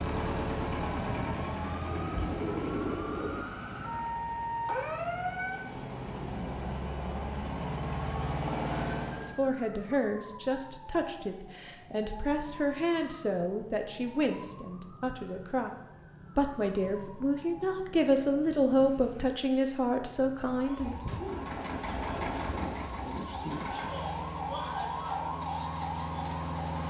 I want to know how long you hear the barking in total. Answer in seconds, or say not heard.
not heard.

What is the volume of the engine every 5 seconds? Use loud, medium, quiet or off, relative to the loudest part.
loud, loud, off, off, loud, loud.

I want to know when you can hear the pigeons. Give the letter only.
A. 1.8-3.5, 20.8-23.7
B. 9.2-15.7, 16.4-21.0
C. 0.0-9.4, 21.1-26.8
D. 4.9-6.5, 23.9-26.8
A.